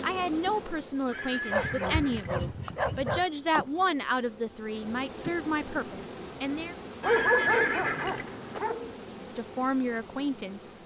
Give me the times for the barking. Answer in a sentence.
You can hear the barking from 1.5 to 3.2 s and from 7.0 to 8.9 s.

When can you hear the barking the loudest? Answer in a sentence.
The loudest moment of the barking is at 7 seconds.